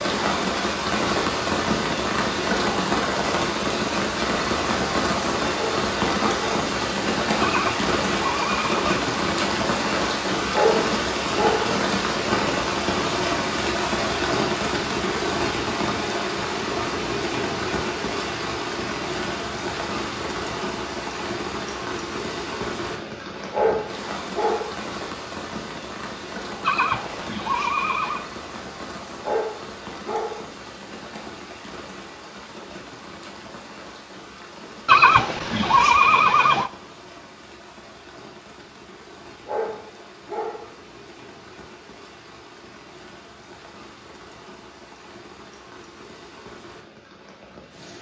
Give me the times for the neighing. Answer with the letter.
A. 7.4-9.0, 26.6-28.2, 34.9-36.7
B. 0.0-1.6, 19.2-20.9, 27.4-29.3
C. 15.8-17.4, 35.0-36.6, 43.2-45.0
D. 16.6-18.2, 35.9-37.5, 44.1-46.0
A.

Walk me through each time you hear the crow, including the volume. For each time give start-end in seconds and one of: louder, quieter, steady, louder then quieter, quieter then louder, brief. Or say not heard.
not heard.